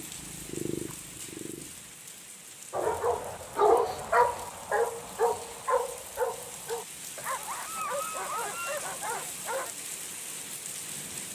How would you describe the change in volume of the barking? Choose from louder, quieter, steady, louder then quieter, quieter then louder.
quieter.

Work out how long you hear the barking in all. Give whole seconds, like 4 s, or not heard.
7 s.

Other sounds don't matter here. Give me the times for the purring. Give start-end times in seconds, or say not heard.
0.0-1.9.